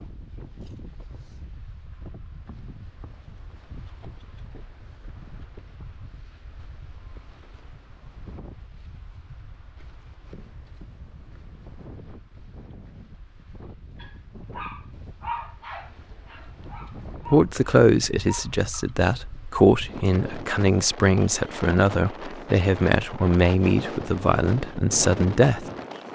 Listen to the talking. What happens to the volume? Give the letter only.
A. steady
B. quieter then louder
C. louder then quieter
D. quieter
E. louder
A.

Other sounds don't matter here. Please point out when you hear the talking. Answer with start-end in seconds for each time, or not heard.
17.2-25.6.